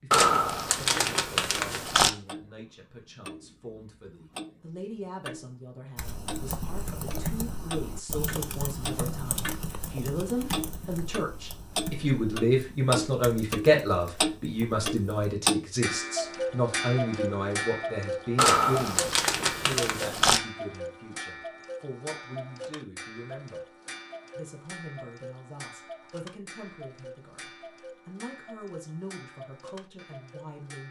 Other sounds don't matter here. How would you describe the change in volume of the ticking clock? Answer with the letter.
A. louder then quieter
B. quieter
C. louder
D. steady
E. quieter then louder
A.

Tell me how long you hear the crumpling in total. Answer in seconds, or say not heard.
4 s.